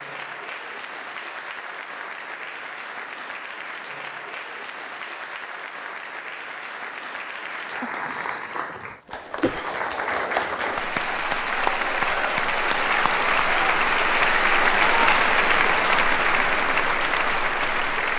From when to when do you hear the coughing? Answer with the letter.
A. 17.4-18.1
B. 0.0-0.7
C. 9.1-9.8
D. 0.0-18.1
C.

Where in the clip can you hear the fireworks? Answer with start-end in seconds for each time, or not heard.
not heard.